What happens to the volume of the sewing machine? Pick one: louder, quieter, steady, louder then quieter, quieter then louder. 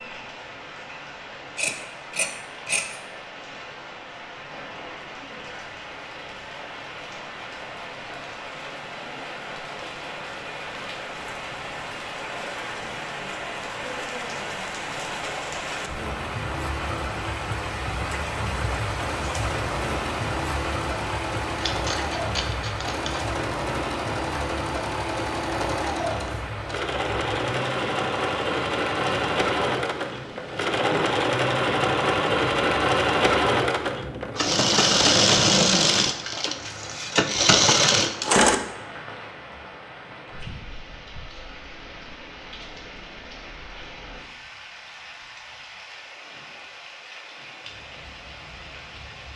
louder.